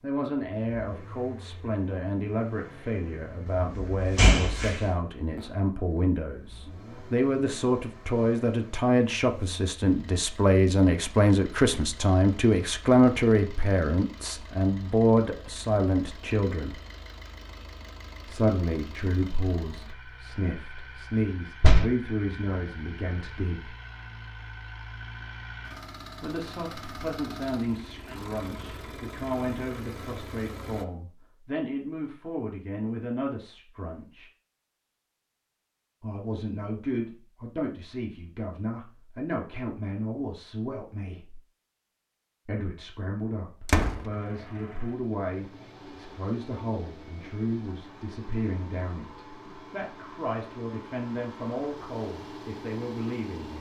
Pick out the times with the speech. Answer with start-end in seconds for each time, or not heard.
0.0-16.8, 18.2-23.8, 26.2-34.3, 36.0-41.4, 42.5-53.5.